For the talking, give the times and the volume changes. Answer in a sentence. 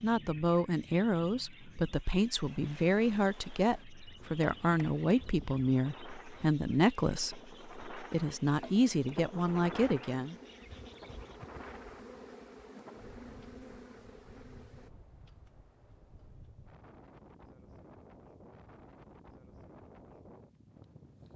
The talking can be heard from 0.0 to 10.3 s, at a steady volume.